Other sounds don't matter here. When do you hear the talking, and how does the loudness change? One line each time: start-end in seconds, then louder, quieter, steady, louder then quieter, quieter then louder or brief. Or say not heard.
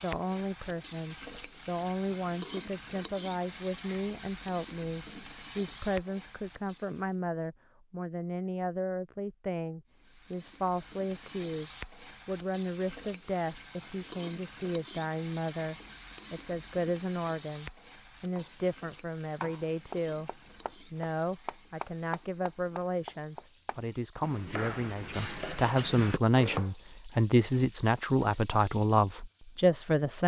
0.0-30.2 louder.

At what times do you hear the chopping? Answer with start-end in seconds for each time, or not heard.
18.4-26.7.